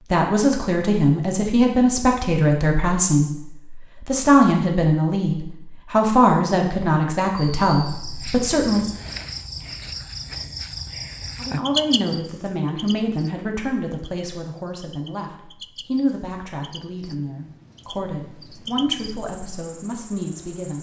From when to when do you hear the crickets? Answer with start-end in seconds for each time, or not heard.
7.3-20.7.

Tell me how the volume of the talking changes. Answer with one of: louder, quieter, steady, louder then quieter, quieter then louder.
quieter.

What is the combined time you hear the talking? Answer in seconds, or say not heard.
18 s.